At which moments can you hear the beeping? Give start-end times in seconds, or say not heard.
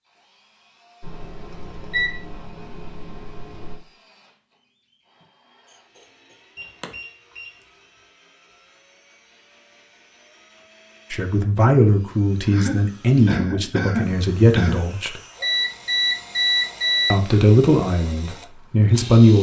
1.0-3.8, 6.5-7.7, 15.4-17.3.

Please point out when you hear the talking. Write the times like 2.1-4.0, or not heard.
11.1-15.2, 17.1-19.3.